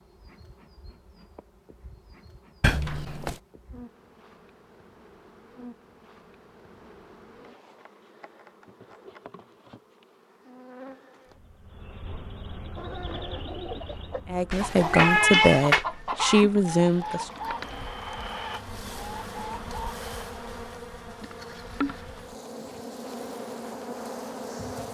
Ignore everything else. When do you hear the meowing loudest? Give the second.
15 s.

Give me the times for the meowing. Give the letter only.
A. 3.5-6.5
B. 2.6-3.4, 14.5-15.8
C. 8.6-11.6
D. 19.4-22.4
B.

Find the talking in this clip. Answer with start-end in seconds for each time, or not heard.
14.3-17.3.